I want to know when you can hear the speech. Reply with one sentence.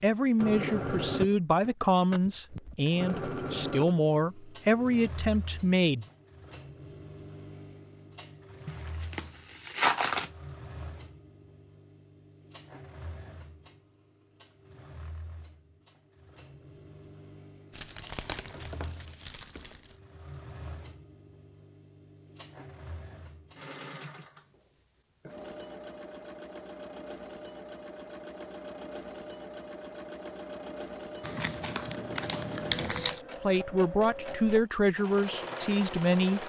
You can hear the speech from 0.0 to 6.0 s and from 33.4 to 36.4 s.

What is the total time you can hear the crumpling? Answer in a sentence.
You can hear the crumpling for 6 seconds altogether.